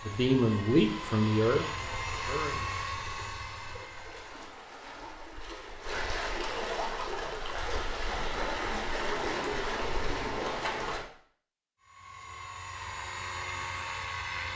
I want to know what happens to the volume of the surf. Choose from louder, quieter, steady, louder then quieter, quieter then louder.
louder.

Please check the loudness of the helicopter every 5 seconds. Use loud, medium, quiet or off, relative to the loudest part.
loud, off, loud.